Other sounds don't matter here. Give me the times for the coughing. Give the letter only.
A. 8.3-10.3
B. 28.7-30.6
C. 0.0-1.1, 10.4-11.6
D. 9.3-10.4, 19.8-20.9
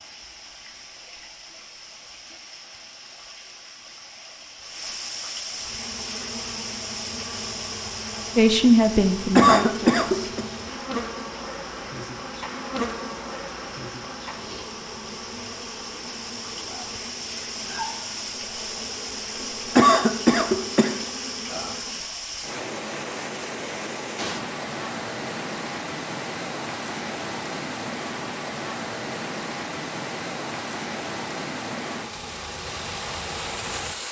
D.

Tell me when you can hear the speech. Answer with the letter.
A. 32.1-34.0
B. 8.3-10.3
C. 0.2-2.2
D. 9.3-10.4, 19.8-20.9
B.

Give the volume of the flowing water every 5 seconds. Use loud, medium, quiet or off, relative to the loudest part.
medium, loud, medium, loud, loud, loud, loud.